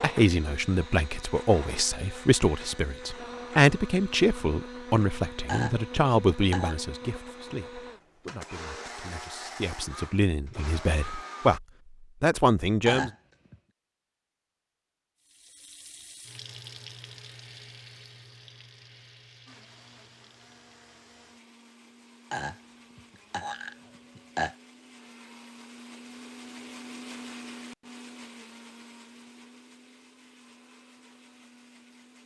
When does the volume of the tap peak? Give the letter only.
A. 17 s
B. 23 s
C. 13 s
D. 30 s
A.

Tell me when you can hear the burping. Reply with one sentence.
The burping can be heard from 5.5 to 6.8 s, from 12.8 to 13.6 s and from 22.3 to 24.6 s.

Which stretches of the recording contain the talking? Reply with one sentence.
You can hear the talking from 0.0 to 13.1 s.